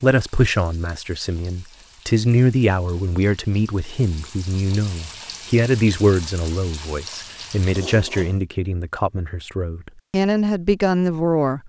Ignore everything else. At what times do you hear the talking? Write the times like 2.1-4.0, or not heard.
0.0-11.6.